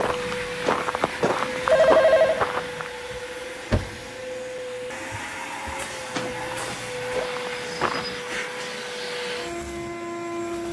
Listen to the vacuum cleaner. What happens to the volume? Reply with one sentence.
The loudness of the vacuum cleaner stays about the same.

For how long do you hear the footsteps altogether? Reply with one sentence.
You can hear the footsteps for 5 seconds altogether.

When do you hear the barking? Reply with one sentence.
The barking can't be heard in this clip.